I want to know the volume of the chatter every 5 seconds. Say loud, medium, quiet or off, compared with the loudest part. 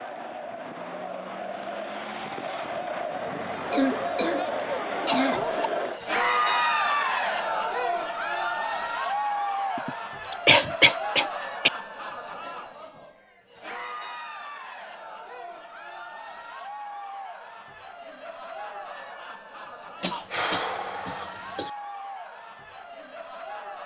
medium, loud, medium, quiet, quiet.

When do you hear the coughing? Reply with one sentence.
The coughing can be heard from 3.7 to 5.7 s, from 9.8 to 11.7 s and from 20.0 to 21.7 s.